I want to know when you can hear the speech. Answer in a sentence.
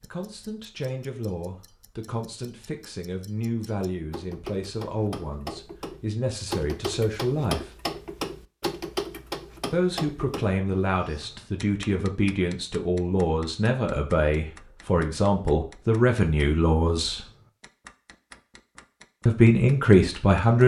You can hear the speech from 0.0 to 7.7 s, from 9.7 to 17.2 s and from 19.2 to 20.6 s.